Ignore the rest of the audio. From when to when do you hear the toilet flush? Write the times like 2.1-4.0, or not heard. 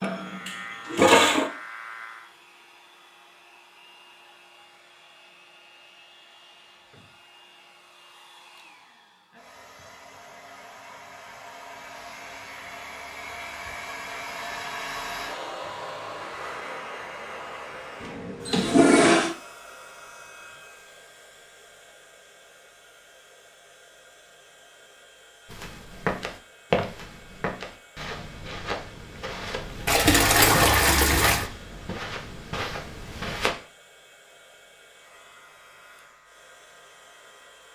0.0-1.5, 18.0-19.4, 29.9-31.4.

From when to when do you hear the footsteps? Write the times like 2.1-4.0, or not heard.
25.4-33.5.